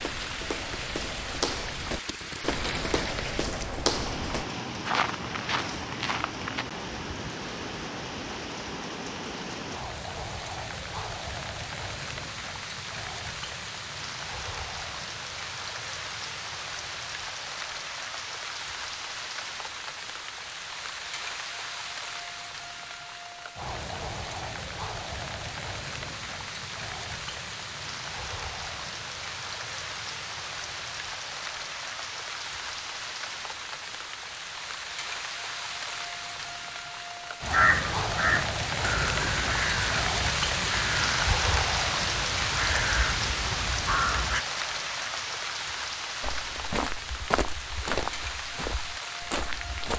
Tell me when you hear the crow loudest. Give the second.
38 s.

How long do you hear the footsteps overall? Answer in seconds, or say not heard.
10 s.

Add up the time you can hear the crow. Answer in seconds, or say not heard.
7 s.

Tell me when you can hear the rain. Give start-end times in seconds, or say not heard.
0.0-49.9.